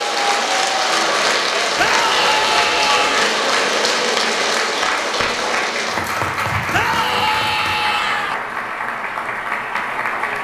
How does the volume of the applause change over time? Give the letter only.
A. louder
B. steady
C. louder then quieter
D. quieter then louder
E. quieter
E.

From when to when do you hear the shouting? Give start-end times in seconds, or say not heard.
1.8-3.3, 6.7-8.3.